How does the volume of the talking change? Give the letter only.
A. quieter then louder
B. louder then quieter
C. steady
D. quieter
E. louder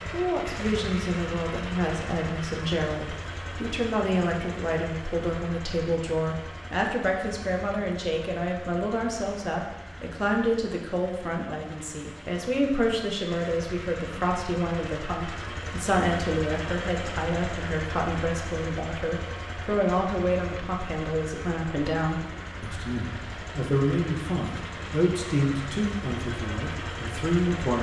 C.